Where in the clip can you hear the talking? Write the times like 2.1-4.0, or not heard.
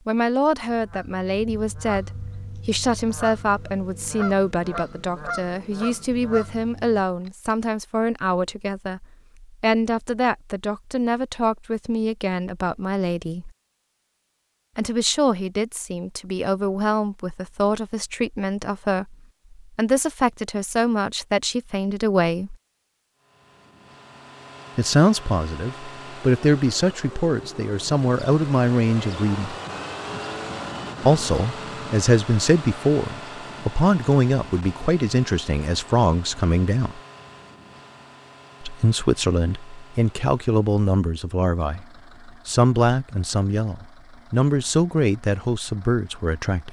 0.1-13.5, 14.8-22.6, 24.8-29.6, 31.0-37.0, 38.6-46.6.